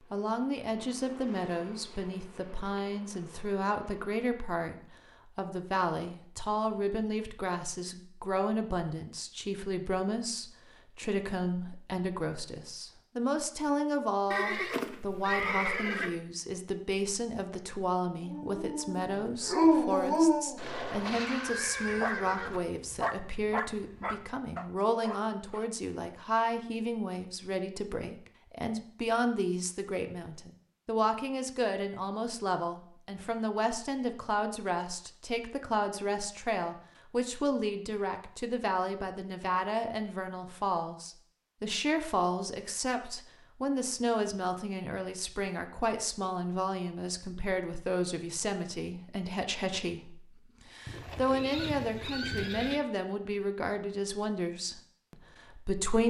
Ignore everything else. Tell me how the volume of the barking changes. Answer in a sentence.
The loudness of the barking goes down.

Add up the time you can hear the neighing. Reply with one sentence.
The neighing can be heard for 6 seconds in total.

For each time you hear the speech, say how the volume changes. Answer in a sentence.
You can hear the speech from 0.1 to 56.0 s, at a steady volume.